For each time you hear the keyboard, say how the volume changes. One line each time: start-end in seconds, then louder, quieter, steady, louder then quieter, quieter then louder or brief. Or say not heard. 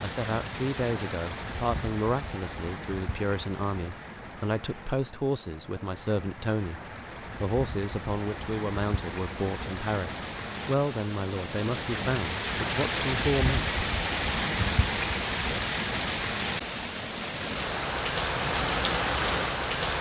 not heard.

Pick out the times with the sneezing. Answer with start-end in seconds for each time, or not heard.
not heard.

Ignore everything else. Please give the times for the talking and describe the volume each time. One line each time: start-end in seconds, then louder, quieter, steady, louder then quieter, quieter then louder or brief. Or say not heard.
0.0-13.7 steady.